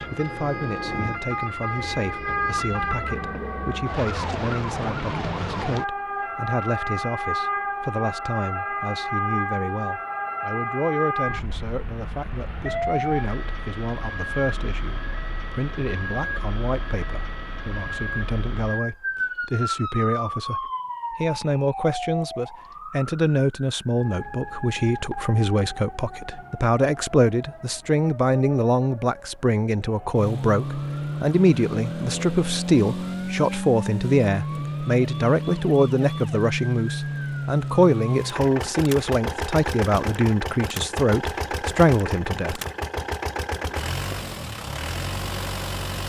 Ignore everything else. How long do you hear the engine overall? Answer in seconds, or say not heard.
16 s.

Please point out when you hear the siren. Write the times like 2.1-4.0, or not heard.
0.0-38.4.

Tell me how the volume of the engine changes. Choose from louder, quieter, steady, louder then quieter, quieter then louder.
steady.